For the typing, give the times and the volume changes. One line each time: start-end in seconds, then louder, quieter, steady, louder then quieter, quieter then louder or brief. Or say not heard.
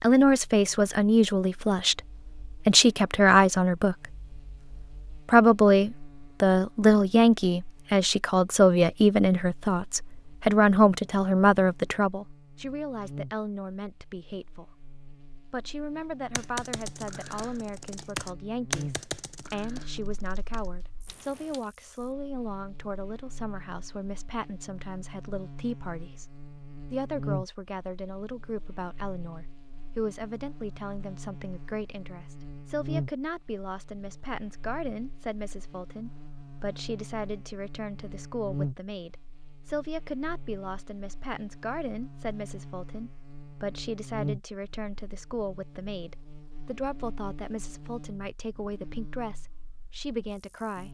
16.4-21.6 louder then quieter.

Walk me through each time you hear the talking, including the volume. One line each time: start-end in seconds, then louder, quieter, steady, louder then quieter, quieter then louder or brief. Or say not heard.
0.0-50.8 quieter.